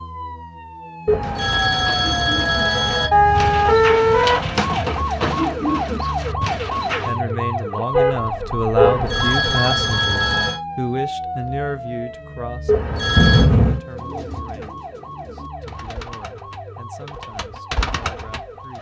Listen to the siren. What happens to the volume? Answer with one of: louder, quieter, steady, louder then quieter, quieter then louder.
louder then quieter.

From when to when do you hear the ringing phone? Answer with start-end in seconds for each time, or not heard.
1.1-3.1, 8.8-10.6, 12.7-13.5.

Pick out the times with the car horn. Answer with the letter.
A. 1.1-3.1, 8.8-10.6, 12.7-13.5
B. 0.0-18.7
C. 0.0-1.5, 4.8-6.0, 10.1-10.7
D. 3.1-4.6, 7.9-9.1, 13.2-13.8
D.